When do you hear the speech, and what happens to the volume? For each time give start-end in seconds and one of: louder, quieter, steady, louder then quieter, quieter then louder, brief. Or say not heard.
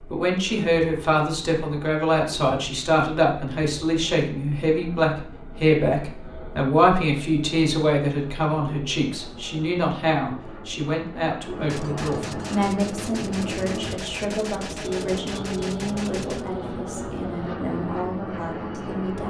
0.1-19.2 quieter.